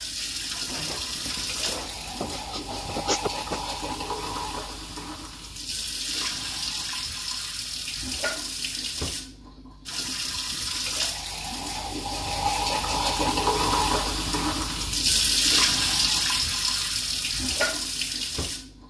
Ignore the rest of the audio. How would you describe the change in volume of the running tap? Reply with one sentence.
The loudness of the running tap goes up.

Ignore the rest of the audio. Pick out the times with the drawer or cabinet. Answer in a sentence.
The drawer or cabinet can be heard from 0.7 to 3.0 s.